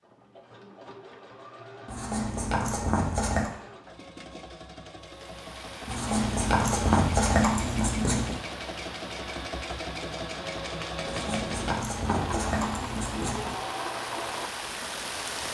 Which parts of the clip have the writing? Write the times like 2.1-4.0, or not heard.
1.9-3.5, 5.8-8.3, 11.1-13.6.